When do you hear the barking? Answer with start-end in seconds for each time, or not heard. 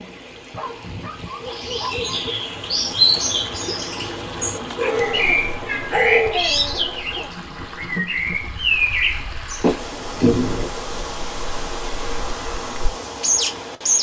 0.5-2.3, 4.8-7.3, 9.6-10.7.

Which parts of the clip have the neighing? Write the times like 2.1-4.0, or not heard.
not heard.